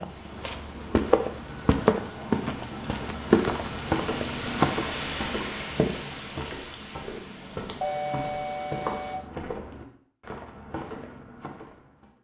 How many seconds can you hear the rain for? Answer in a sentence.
The rain can be heard for 8 seconds in total.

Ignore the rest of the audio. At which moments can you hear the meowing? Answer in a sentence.
You can't hear the meowing here.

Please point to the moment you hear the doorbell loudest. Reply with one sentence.
The volume of the doorbell peaks at 8 seconds.